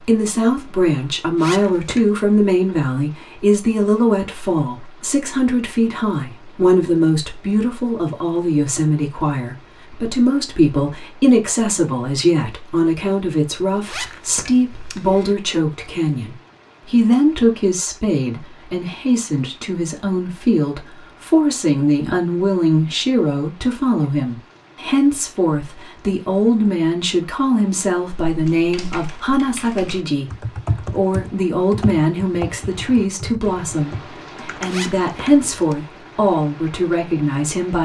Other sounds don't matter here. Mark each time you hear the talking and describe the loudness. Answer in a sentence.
You can hear the talking from 0.0 to 37.8 s, at a steady volume.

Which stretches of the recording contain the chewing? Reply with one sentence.
You can't hear the chewing here.